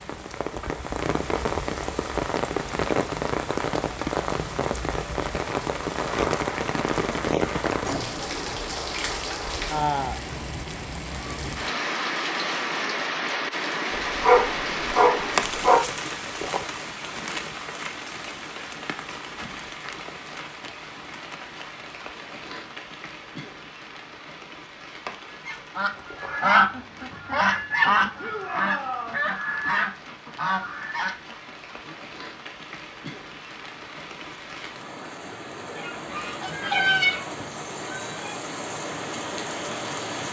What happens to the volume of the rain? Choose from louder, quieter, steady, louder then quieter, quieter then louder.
quieter then louder.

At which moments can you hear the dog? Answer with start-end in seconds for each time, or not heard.
13.9-15.8.